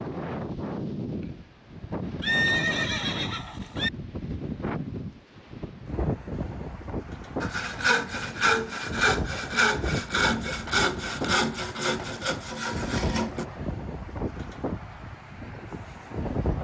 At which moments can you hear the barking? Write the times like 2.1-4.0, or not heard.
not heard.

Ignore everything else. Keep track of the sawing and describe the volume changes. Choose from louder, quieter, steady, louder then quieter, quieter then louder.
quieter.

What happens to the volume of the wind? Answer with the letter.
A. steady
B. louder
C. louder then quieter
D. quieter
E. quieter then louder
A.